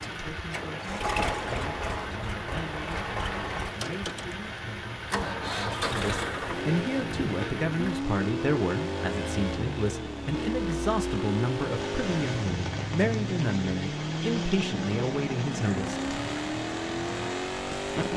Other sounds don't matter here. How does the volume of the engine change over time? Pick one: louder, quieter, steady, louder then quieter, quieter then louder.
steady.